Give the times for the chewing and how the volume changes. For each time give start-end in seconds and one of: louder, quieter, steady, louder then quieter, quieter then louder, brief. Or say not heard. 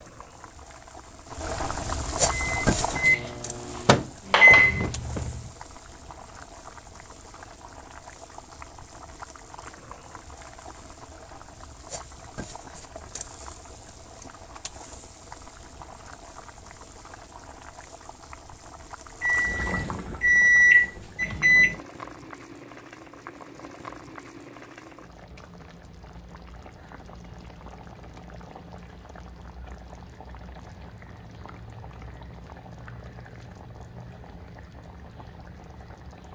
not heard.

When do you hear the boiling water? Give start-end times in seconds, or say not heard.
0.0-36.3.